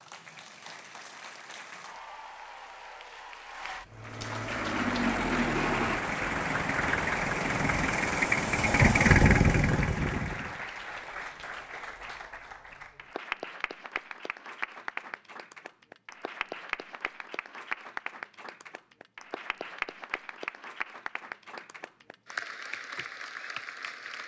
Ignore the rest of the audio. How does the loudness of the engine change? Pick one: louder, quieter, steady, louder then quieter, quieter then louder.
louder.